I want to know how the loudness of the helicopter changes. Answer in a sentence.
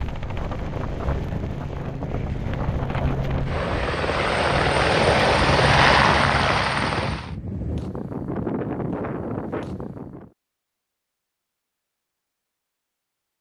The loudness of the helicopter goes up.